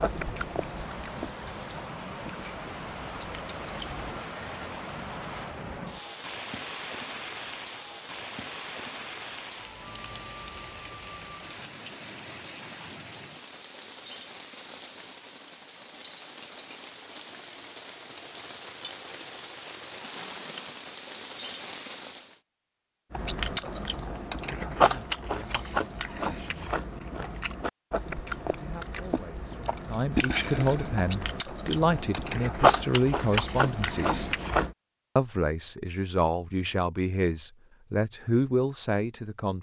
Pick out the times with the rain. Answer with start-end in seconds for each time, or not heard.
0.0-22.4.